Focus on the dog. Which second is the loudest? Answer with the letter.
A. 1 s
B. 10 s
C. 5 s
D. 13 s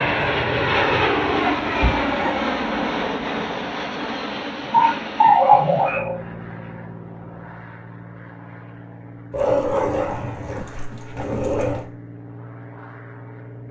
C.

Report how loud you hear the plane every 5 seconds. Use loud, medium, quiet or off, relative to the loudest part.
loud, quiet, quiet.